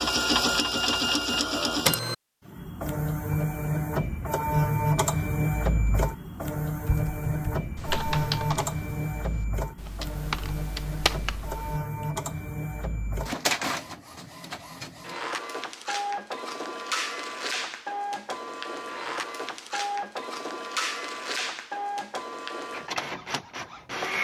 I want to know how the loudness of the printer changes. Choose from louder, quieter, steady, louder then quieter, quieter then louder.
quieter.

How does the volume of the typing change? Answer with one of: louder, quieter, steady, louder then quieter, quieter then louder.
quieter then louder.